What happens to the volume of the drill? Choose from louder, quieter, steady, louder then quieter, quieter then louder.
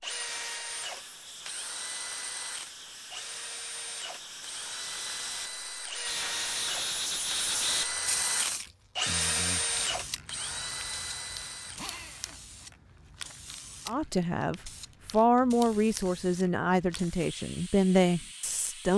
louder then quieter.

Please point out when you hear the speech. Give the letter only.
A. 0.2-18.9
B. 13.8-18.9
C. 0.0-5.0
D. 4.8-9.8
B.